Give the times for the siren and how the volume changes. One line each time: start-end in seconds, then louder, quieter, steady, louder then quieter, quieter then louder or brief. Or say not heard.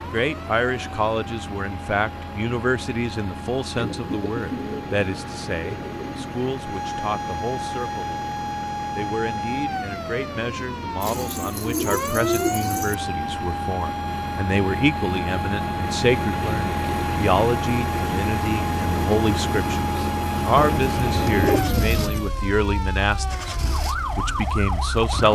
0.0-25.3 louder.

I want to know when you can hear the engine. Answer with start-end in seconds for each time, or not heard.
0.0-25.3.